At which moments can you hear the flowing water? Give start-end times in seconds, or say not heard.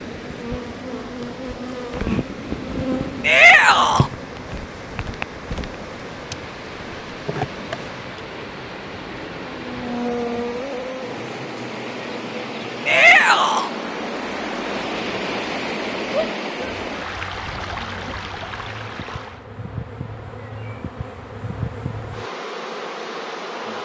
0.0-19.4.